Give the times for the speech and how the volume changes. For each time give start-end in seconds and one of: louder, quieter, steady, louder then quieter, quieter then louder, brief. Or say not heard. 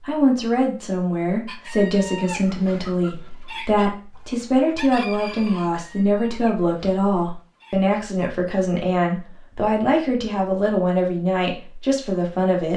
0.1-12.7 steady.